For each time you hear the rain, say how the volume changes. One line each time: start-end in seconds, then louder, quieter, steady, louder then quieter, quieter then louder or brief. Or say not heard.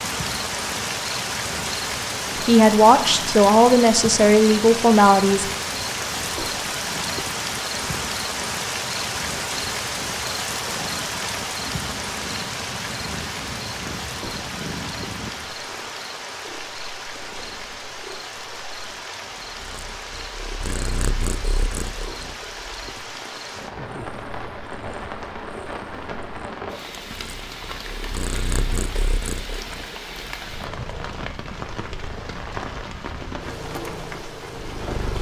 0.0-35.1 quieter.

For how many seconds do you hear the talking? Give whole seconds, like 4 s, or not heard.
3 s.